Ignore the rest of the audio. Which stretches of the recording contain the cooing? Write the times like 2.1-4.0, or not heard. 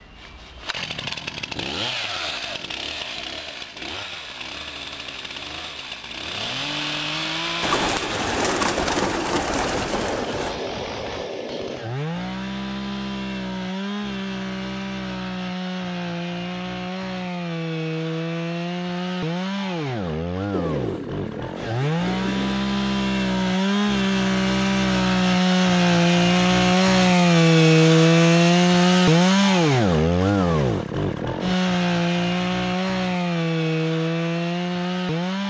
7.6-10.6, 20.5-22.6.